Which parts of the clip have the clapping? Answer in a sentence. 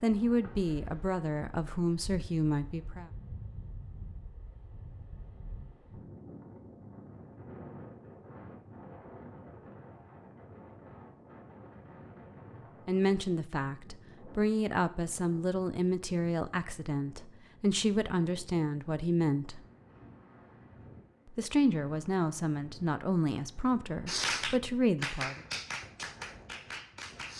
The clapping can be heard from 24.1 to 27.3 s.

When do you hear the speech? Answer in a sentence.
You can hear the speech from 0.0 to 3.0 s, from 12.8 to 19.6 s and from 21.3 to 25.4 s.